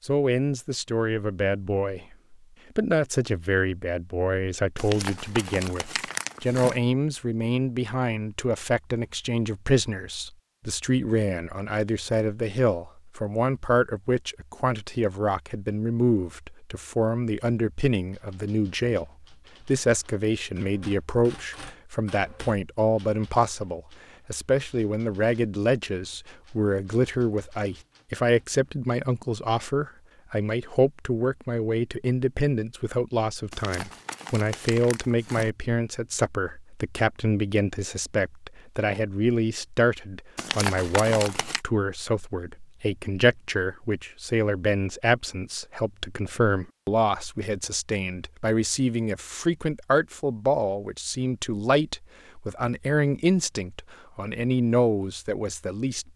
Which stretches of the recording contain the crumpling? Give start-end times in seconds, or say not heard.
4.8-6.8, 33.5-35.5, 40.4-41.6.